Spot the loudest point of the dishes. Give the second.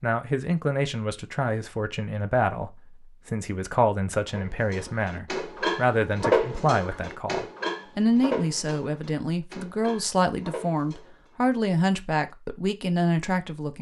6 s.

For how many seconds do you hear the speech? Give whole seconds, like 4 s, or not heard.
14 s.